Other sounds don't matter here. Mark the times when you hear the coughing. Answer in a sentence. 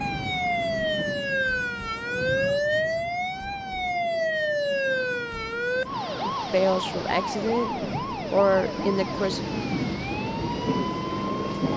The coughing can't be heard in this clip.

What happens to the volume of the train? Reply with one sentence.
The loudness of the train goes down, then up.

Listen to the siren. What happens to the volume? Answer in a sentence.
The volume of the siren goes down.